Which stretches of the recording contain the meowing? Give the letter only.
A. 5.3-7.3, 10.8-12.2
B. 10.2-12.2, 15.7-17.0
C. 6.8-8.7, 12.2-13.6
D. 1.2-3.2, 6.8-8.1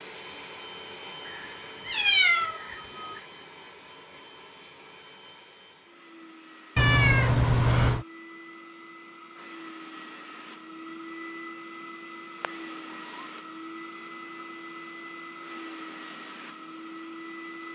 D.